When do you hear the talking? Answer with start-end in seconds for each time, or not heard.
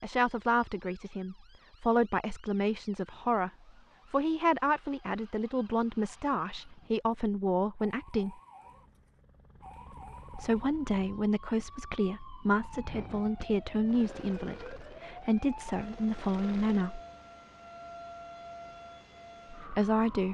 0.0-8.4, 10.3-17.0, 19.5-20.2.